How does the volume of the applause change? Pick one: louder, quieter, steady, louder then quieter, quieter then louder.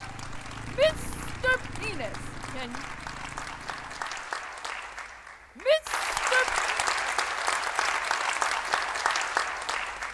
louder.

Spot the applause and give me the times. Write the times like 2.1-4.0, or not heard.
0.0-10.1.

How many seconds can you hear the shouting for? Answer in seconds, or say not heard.
3 s.